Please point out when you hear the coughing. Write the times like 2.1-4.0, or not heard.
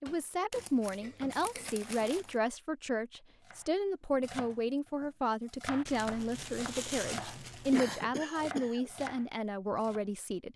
0.1-2.2, 7.7-9.1.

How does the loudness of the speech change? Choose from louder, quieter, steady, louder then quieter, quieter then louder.
steady.